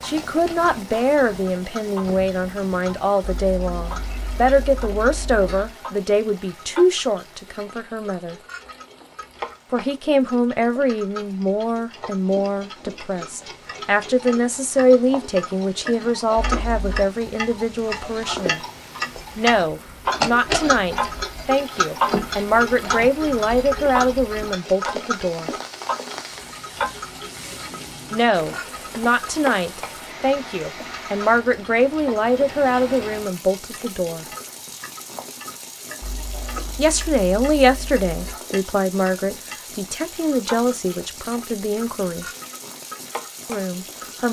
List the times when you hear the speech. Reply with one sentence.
The speech can be heard from 0.0 to 8.3 s, from 9.7 to 18.6 s, from 19.4 to 25.5 s, from 28.1 to 34.2 s, from 36.8 to 42.2 s and from 43.5 to 44.2 s.